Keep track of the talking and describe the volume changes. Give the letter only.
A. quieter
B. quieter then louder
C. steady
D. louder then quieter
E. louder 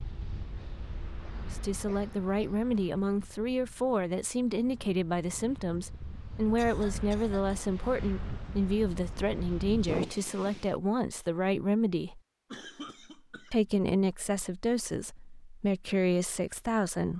C.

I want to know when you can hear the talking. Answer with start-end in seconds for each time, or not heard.
1.4-12.2, 13.5-17.1.